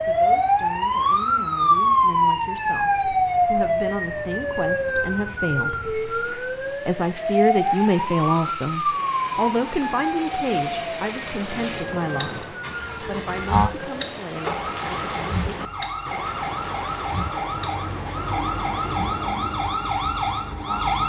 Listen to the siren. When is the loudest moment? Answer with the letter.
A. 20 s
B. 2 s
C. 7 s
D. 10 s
B.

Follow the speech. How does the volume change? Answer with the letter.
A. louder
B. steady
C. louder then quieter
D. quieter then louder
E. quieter
C.